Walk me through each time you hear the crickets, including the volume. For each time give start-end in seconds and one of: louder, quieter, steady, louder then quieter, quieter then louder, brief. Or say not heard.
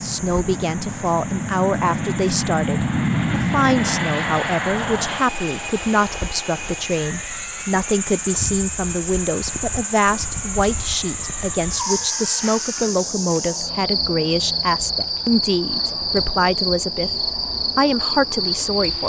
0.0-19.0 louder.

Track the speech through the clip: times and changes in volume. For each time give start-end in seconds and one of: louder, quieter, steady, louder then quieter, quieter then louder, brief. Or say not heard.
0.0-19.0 steady.